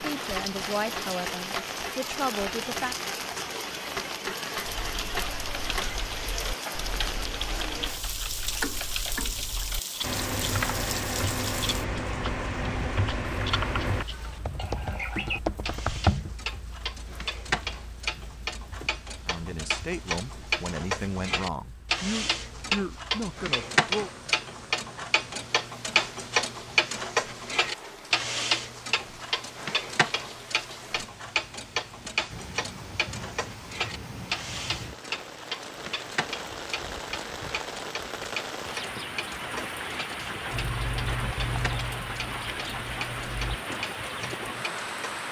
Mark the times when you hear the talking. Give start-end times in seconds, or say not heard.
0.0-3.0, 19.2-24.1.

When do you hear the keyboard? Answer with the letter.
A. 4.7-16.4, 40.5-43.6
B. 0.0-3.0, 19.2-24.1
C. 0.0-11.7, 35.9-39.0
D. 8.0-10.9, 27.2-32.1
A.